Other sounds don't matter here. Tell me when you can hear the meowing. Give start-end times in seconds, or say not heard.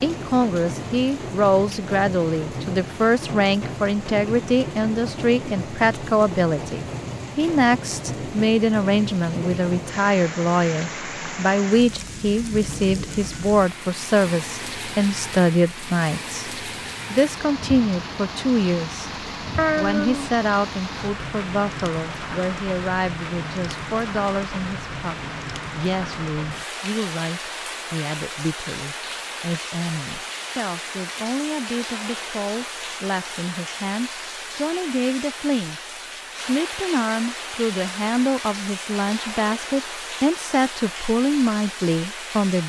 19.6-20.4.